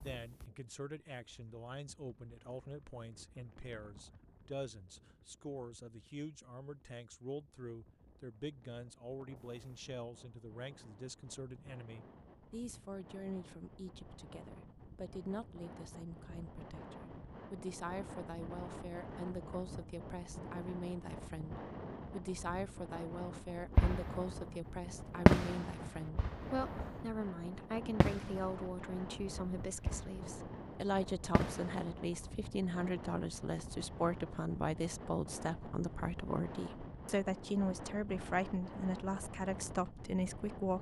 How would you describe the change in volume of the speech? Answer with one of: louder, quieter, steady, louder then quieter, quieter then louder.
louder.